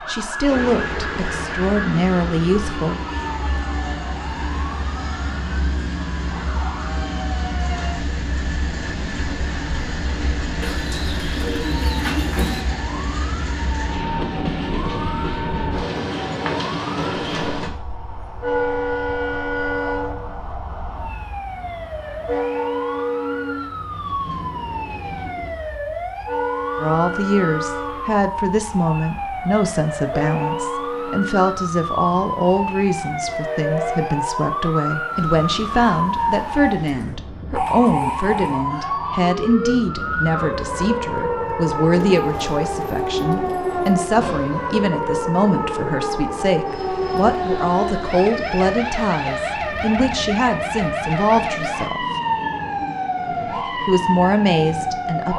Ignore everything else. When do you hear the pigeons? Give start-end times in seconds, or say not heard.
10.6-12.7, 41.9-44.0.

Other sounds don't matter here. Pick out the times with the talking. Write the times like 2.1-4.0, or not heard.
0.1-3.0, 26.8-52.0, 53.8-55.3.